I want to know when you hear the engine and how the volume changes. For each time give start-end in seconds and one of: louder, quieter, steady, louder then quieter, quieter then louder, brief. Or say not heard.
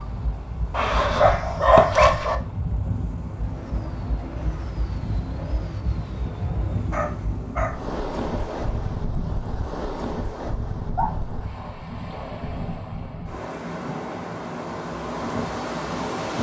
3.1-8.9 steady.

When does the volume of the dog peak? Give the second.
2 s.